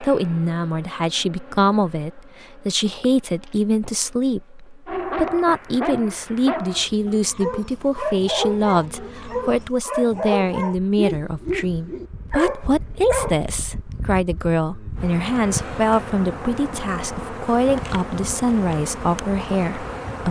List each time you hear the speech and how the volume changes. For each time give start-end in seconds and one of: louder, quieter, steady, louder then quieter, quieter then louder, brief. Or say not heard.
0.0-20.2 steady.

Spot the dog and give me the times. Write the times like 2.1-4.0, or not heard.
4.8-13.4.